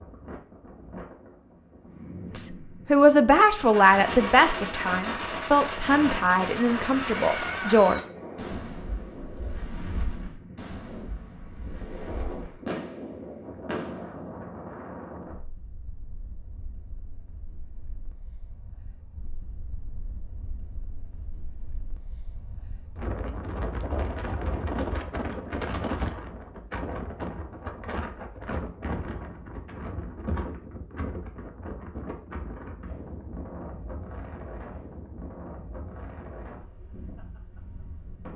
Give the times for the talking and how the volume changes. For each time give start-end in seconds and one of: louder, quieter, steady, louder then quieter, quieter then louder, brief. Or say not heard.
2.4-8.0 quieter.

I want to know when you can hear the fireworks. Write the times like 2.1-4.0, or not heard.
3.5-14.2.